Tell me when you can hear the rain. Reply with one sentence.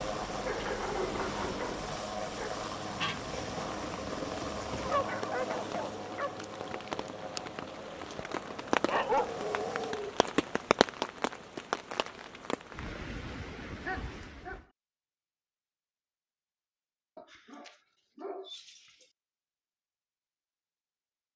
You can hear the rain from 0.0 to 14.7 s.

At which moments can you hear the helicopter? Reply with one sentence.
The helicopter can be heard from 0.0 to 9.9 s.